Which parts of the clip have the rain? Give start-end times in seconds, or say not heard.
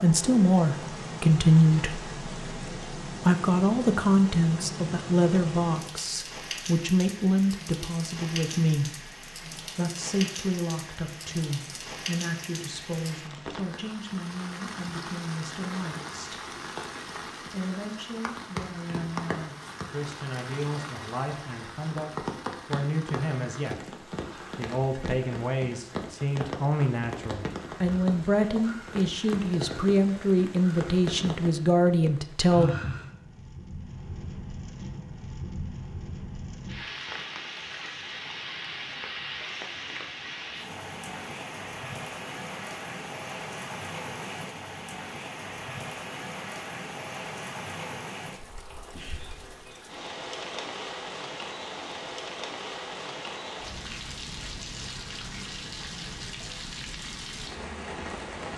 0.0-58.5.